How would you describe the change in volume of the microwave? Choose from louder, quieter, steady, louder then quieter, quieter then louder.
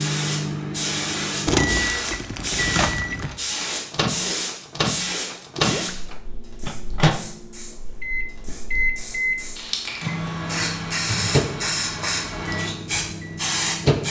steady.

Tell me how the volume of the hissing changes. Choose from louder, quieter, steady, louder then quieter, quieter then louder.
quieter then louder.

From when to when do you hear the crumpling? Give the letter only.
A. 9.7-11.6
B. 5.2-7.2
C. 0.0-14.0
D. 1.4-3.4
D.